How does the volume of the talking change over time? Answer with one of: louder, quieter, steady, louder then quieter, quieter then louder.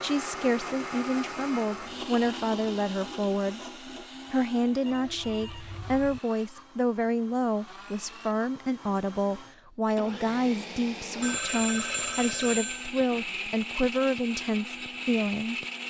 steady.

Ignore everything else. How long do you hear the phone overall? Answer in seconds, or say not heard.
3 s.